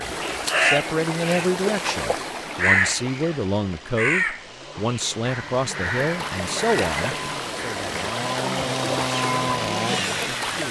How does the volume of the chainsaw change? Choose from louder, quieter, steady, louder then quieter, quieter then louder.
louder.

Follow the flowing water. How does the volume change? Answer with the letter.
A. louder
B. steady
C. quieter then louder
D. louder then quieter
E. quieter
C.